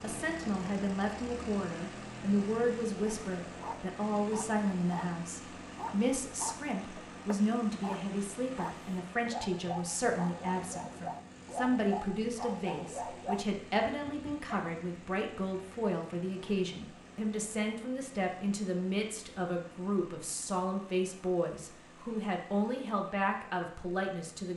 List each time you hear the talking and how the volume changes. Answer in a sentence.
You can hear the talking from 0.0 to 24.5 s, at a steady volume.